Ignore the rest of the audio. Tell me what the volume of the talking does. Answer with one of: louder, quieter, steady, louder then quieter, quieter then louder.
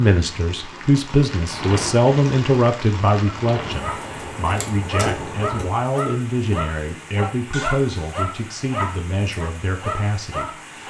quieter.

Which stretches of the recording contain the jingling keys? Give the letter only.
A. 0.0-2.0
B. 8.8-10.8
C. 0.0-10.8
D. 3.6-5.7
D.